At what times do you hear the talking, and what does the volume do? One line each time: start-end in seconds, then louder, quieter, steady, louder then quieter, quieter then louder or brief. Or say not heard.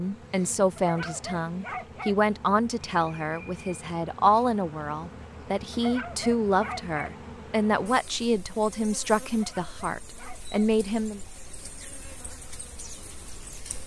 0.0-11.2 steady.